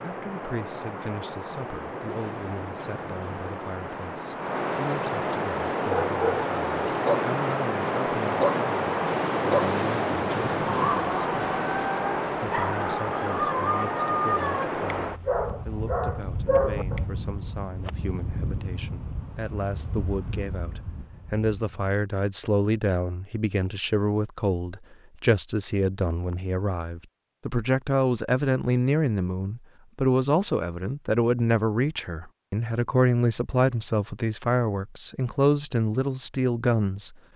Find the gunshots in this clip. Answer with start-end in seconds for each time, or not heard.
not heard.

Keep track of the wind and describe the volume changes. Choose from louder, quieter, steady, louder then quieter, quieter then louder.
louder then quieter.